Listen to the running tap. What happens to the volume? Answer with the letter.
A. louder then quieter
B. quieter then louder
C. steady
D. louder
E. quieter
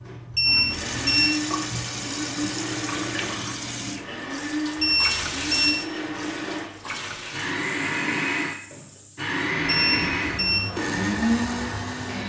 B.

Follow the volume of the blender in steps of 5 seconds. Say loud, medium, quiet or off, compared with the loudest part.
medium, loud, loud.